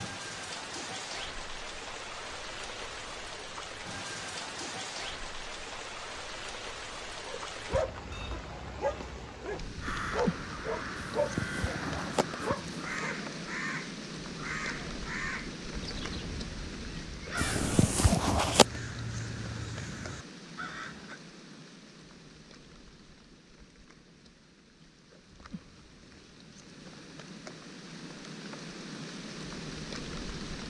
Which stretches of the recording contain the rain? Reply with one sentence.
The rain can be heard from 0.0 to 30.6 s.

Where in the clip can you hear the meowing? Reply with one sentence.
You can hear the meowing from 10.9 to 13.1 s and from 17.4 to 18.6 s.